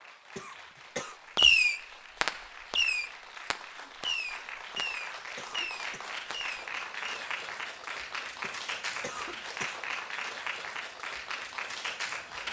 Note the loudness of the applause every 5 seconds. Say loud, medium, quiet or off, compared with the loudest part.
medium, loud, loud.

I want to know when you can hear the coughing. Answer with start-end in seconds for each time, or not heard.
0.3-1.2, 4.8-6.2, 8.4-9.8.